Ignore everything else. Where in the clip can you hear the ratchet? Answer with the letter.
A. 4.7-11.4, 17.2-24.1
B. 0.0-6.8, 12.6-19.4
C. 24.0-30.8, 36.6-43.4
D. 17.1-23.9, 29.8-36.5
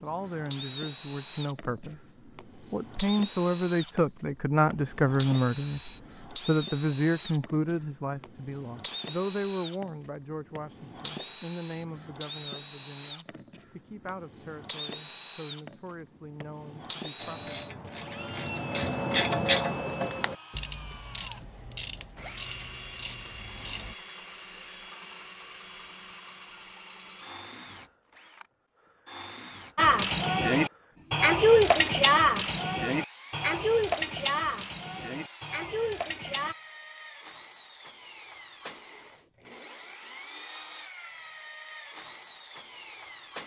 D.